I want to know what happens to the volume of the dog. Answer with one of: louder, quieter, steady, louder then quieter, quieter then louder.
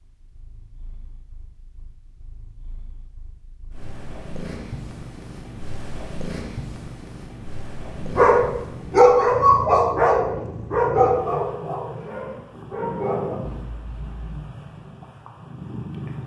quieter.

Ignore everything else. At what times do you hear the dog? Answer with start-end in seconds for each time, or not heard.
8.0-14.5.